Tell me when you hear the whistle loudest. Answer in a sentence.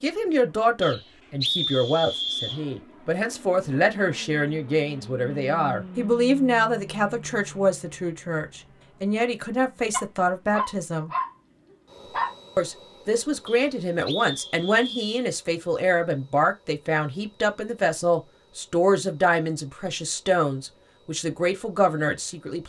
The loudest moment of the whistle is at 2 seconds.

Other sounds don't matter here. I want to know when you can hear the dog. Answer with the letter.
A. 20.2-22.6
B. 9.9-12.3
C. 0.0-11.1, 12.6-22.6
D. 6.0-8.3
B.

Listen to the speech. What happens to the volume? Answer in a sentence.
The volume of the speech stays about the same.